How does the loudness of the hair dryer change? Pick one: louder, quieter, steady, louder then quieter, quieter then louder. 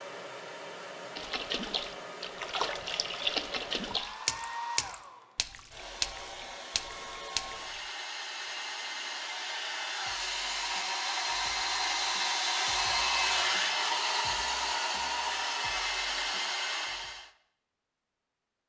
louder.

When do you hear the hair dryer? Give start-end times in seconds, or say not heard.
0.0-17.3.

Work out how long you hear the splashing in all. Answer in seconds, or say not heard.
7 s.